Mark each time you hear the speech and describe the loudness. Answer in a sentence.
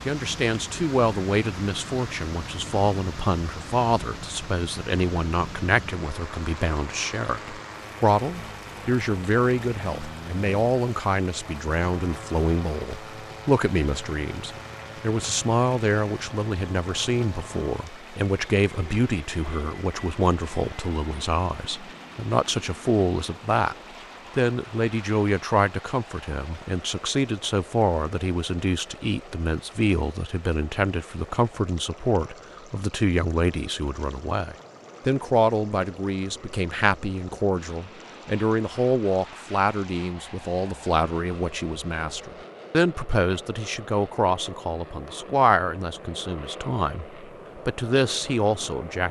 You can hear the speech from 0.1 to 23.8 s, at a steady volume; and from 24.4 to 49.0 s, at a steady volume.